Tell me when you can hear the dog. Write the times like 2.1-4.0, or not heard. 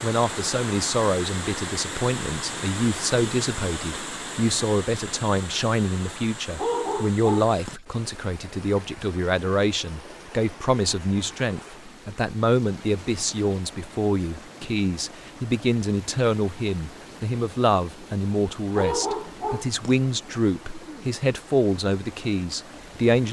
6.5-7.8, 18.8-19.9.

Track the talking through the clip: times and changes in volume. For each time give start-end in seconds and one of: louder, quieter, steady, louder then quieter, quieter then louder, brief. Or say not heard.
0.0-23.2 steady.